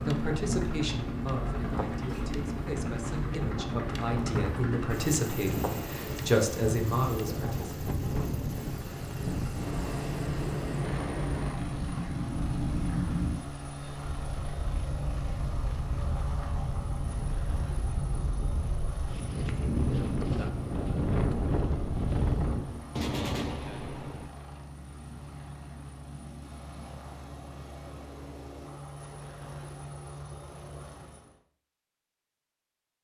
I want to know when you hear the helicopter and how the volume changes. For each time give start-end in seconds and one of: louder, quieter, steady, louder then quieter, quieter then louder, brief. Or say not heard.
0.0-31.4 quieter.